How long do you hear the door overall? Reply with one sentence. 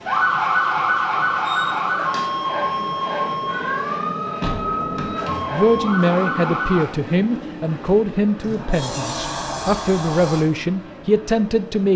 The door can be heard for 4 seconds in total.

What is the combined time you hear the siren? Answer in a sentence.
You can hear the siren for 7 seconds altogether.